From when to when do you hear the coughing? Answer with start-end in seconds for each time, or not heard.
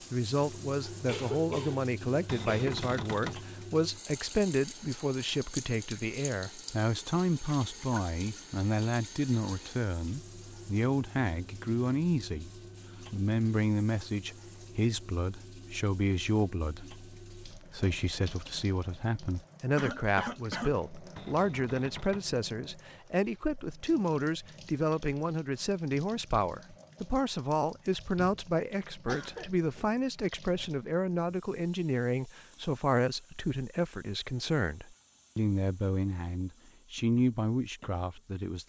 0.9-2.8, 19.8-20.8, 29.1-29.9.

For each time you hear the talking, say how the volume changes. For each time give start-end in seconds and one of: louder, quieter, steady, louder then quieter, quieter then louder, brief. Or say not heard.
0.1-38.6 steady.